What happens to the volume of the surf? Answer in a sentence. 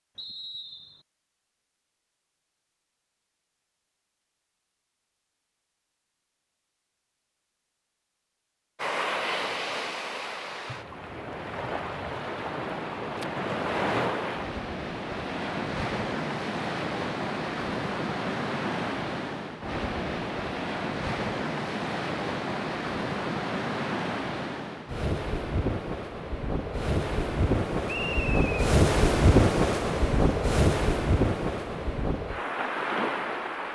The loudness of the surf goes up.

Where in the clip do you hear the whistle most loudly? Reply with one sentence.
The volume of the whistle peaks at 28 seconds.